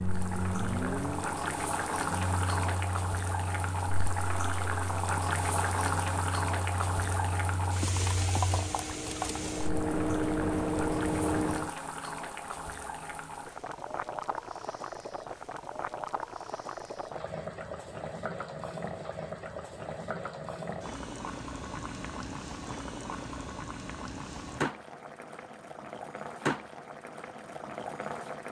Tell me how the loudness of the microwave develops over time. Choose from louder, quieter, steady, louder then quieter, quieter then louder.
quieter then louder.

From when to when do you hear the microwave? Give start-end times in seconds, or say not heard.
0.0-11.8.